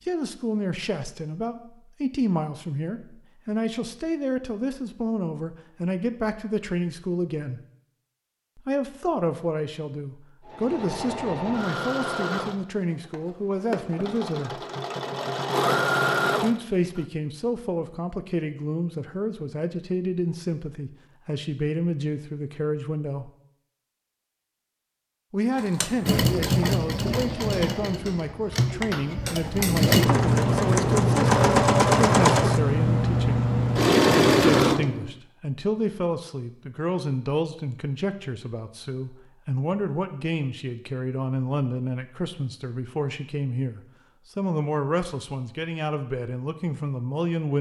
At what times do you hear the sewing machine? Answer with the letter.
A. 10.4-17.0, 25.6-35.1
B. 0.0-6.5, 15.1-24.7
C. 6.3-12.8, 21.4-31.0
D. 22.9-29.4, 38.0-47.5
A.